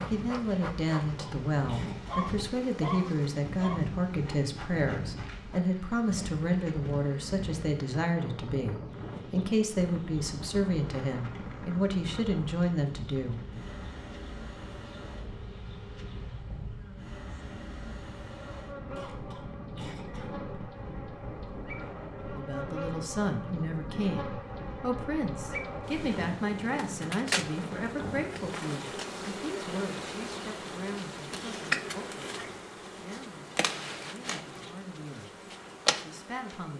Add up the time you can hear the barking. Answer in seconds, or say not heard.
2 s.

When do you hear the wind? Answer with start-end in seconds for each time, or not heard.
0.0-28.5.